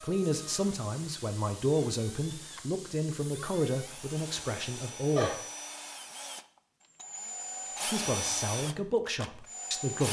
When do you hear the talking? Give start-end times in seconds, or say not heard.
0.0-5.3, 7.8-10.0.